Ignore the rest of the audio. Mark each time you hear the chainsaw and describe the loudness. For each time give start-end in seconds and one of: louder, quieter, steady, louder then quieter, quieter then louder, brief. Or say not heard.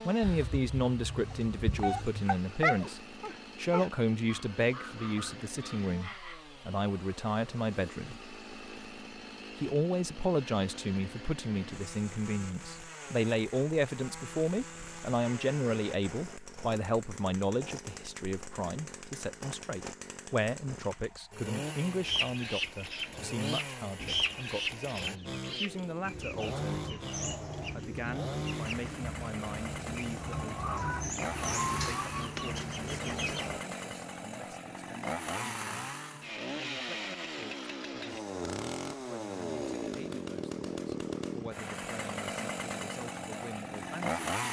0.0-44.4 louder.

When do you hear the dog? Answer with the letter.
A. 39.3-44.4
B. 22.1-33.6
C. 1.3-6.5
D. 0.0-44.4
C.